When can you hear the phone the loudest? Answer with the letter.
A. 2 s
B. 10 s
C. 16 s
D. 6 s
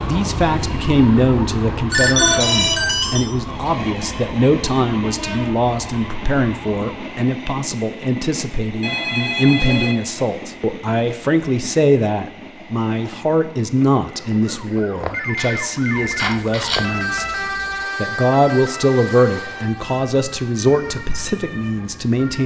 A.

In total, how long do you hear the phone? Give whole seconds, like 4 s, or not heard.
4 s.